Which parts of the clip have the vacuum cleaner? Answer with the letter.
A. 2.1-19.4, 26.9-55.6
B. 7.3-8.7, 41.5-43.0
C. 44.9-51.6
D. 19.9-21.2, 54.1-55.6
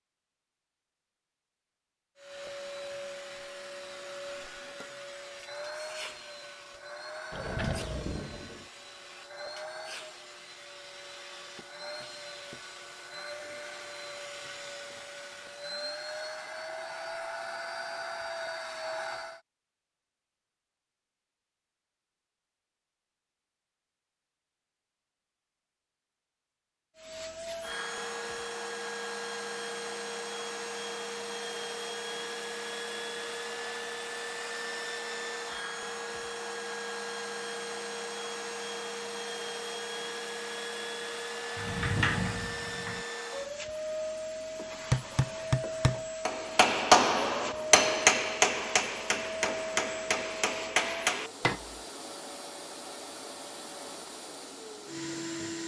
A.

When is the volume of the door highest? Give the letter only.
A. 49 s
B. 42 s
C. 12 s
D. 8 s
B.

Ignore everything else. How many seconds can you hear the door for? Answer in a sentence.
The door can be heard for 3 seconds in total.